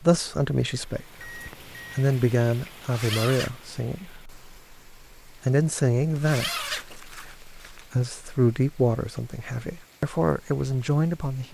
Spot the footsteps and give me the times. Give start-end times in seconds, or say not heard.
not heard.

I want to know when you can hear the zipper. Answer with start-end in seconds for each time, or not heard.
2.8-3.5, 6.2-7.8.